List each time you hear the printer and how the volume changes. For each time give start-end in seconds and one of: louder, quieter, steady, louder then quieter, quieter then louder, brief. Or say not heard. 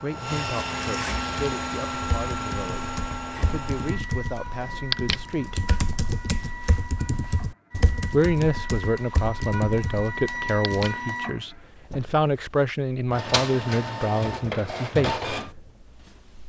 0.0-16.4 quieter then louder.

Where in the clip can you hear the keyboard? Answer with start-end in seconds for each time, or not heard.
1.1-11.0.